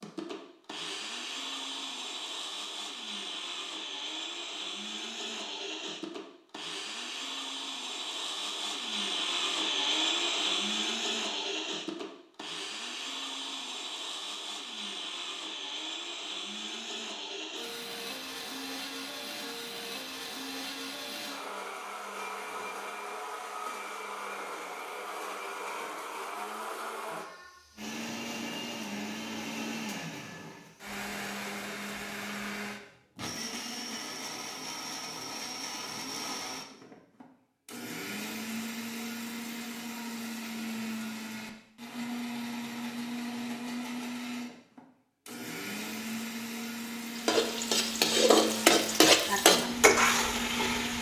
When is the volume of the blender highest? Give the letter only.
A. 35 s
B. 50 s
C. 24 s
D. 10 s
D.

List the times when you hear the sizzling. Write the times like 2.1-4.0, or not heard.
47.1-50.9.